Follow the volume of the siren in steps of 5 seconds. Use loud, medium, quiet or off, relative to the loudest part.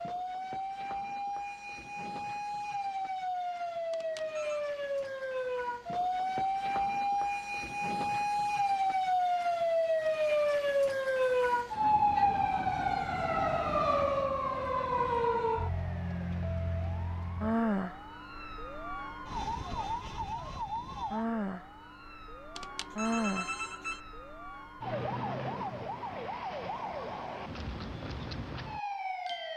medium, loud, loud, medium, medium, medium.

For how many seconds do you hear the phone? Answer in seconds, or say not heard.
2 s.